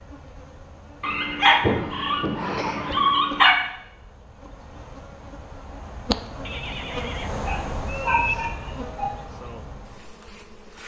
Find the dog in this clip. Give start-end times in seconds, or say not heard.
1.0-3.6, 7.5-9.1.